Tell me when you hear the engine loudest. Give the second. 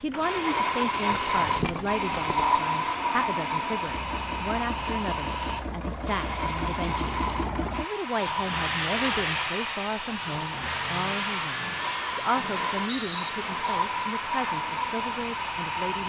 9 s.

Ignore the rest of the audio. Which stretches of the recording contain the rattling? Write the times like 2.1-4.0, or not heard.
0.9-2.5, 6.4-7.3, 12.8-13.3.